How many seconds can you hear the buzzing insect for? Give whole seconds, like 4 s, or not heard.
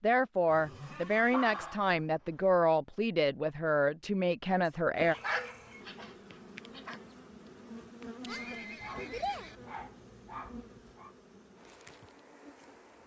8 s.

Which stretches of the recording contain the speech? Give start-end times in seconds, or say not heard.
0.0-5.2.